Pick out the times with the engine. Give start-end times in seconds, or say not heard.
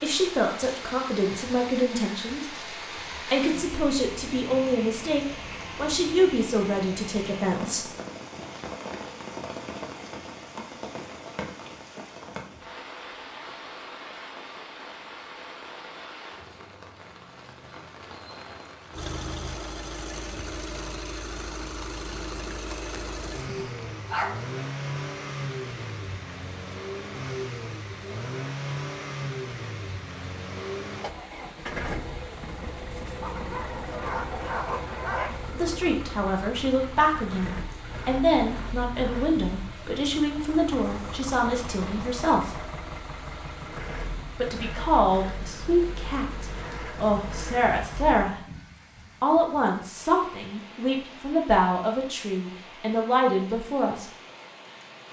18.9-48.4.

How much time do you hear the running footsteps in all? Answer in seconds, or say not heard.
not heard.